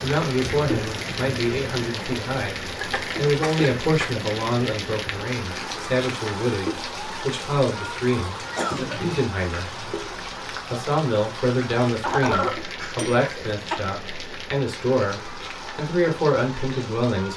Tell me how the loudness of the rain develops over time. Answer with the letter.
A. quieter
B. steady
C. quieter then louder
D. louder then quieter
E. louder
A.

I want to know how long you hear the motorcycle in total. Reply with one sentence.
The motorcycle can't be heard in this clip.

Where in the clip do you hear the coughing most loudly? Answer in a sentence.
The loudest moment of the coughing is at 12 seconds.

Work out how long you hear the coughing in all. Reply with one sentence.
The coughing can be heard for 4 seconds in total.